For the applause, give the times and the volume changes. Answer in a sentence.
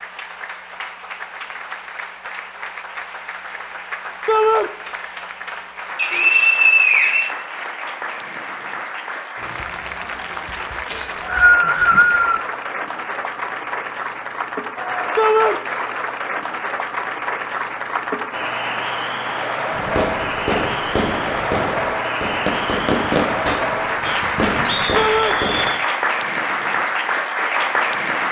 You can hear the applause from 0.0 to 28.2 s, getting louder.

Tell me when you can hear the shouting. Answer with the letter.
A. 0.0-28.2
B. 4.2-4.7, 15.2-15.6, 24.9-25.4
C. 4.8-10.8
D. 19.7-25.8
B.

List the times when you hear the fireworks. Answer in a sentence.
The fireworks can be heard from 19.7 to 25.8 s.